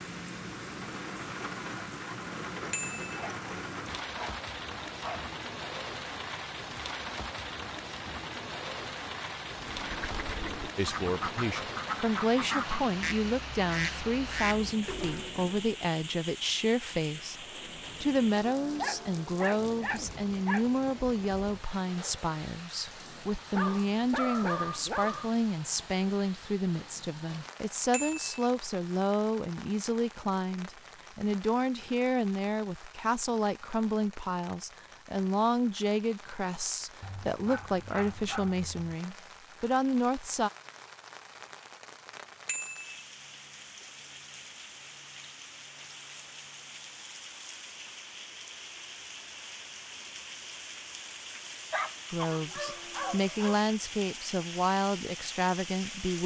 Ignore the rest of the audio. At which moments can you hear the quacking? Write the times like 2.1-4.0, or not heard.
9.5-15.6.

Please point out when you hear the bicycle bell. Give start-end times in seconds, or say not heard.
2.7-3.2, 27.9-28.3, 42.5-43.0.